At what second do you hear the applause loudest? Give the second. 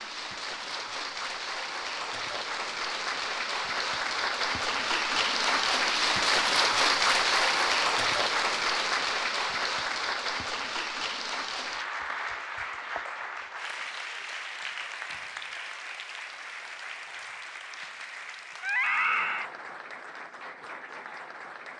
7 s.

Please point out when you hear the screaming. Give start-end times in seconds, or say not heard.
18.6-19.5.